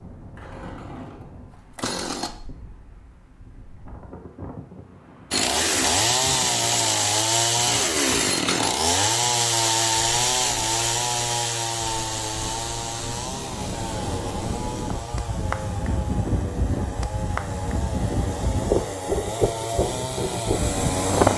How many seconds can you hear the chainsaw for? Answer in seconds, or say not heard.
18 s.